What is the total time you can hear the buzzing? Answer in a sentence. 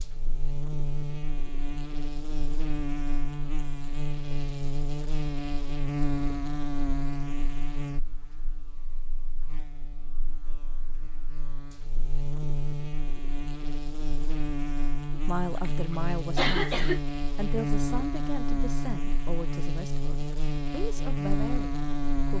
The buzzing can be heard for 22 seconds in total.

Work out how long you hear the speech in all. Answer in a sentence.
The speech can be heard for 7 seconds in total.